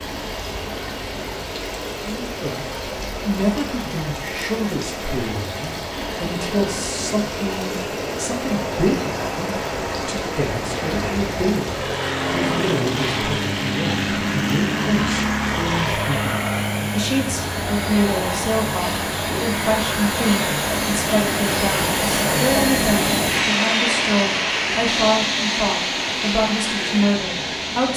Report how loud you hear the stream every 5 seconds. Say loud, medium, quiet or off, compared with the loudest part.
quiet, quiet, quiet, medium, loud, loud.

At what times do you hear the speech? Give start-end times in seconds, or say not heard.
2.0-27.9.